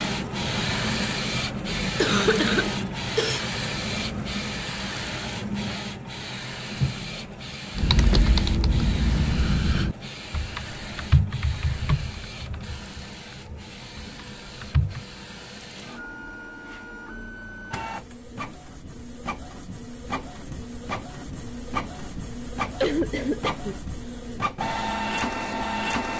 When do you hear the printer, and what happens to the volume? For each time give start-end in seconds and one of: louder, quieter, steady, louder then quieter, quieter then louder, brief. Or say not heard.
0.0-26.1 quieter then louder.